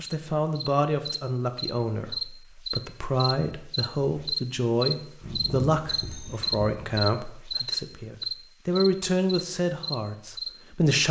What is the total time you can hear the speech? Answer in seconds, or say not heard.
11 s.